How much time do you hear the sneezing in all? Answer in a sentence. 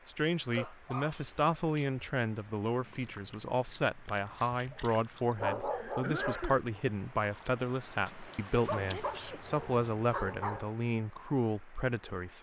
The sneezing can be heard for 2 seconds in total.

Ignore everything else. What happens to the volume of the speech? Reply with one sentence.
The volume of the speech stays about the same.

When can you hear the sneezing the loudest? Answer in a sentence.
The volume of the sneezing peaks at 6 seconds.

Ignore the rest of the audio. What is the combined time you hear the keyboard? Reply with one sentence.
You can't hear the keyboard here.